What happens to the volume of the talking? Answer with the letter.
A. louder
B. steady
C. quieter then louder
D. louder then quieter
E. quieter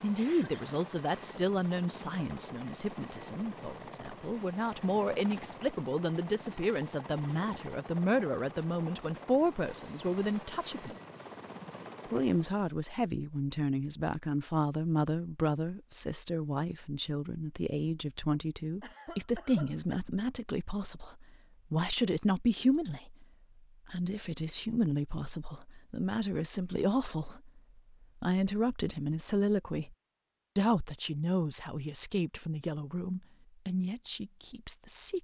B.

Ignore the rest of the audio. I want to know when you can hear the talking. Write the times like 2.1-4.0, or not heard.
0.0-10.9, 12.1-23.2, 23.9-29.9, 30.6-35.1.